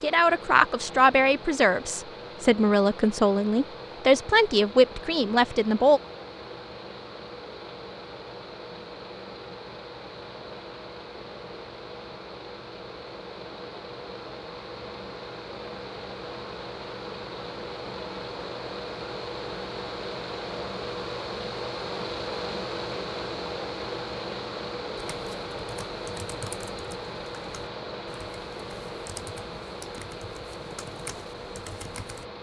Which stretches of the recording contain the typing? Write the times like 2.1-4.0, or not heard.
24.9-32.2.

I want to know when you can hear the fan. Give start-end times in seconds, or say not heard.
0.0-32.3.